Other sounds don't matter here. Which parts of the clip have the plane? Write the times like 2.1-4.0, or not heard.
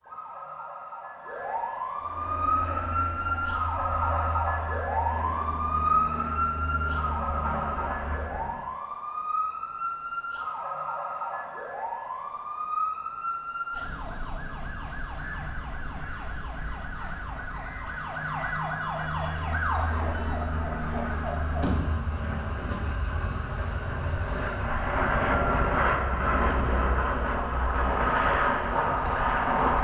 2.0-8.7, 19.2-29.7.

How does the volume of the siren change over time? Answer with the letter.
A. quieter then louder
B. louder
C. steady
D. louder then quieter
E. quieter
E.